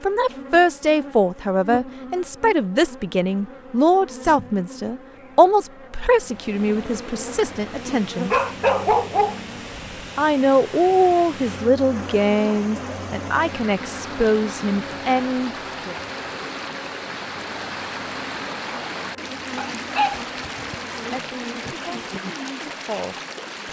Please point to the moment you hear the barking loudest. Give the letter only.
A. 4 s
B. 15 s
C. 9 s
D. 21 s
C.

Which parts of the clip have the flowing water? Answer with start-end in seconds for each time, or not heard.
6.2-23.6.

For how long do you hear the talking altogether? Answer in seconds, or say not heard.
16 s.